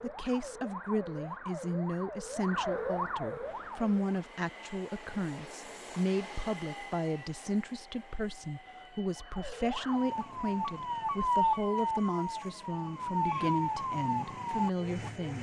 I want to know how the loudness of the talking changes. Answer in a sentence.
The loudness of the talking stays about the same.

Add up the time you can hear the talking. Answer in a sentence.
You can hear the talking for 15 seconds altogether.